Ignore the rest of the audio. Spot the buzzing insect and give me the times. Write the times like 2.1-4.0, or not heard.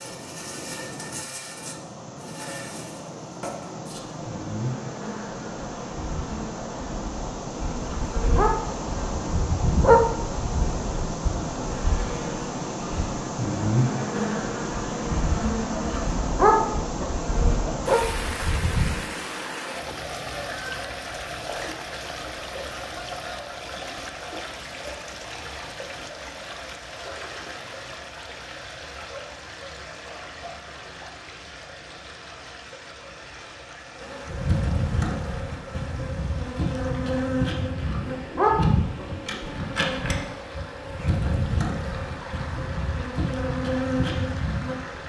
0.0-18.9, 34.0-45.0.